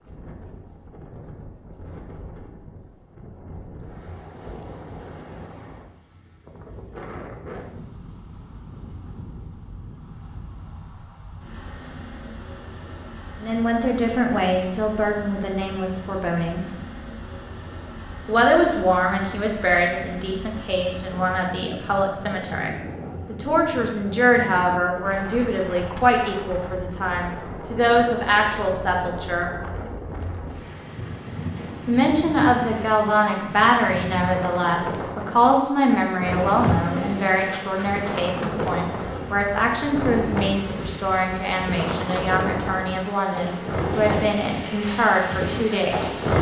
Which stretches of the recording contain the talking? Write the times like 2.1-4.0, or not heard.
13.4-16.6, 18.2-29.5, 31.9-46.1.